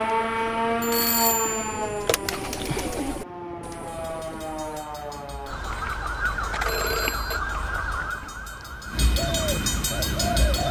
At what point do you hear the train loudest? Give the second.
10 s.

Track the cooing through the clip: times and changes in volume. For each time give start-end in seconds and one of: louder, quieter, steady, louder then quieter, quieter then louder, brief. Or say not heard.
0.0-4.9 louder then quieter
9.2-10.6 brief.